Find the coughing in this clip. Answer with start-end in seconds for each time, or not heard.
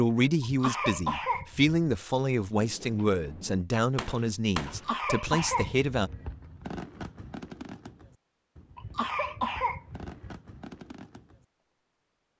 0.4-1.8, 4.7-6.2, 8.8-10.3.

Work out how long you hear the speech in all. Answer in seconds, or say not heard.
6 s.